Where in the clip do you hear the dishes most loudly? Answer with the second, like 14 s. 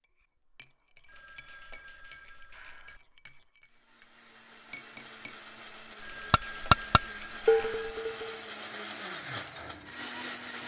7 s.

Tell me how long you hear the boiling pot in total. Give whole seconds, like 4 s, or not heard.
not heard.